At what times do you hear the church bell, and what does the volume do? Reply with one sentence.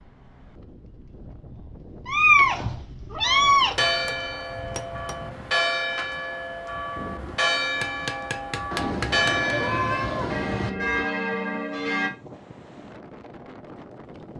You can hear the church bell from 3.2 to 12.1 s, at a steady volume.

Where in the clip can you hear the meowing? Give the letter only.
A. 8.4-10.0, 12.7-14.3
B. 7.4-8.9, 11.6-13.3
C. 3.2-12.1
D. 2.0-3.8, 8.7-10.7
D.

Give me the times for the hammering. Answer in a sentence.
You can hear the hammering from 3.6 to 5.2 s and from 7.8 to 9.5 s.